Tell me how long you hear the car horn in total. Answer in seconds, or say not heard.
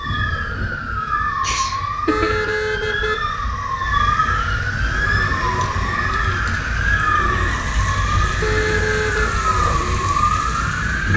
2 s.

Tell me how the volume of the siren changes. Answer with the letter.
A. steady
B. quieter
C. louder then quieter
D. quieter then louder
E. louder
A.